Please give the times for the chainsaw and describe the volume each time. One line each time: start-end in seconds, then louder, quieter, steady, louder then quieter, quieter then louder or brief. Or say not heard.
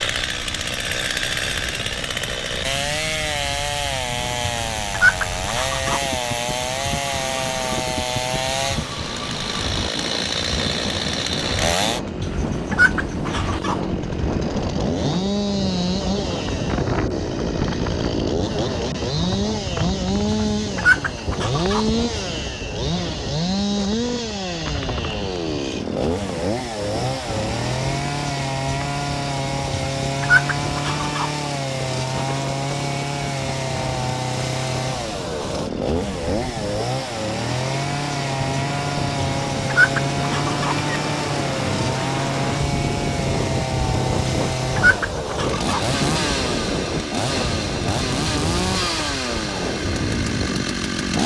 0.0-51.2 steady.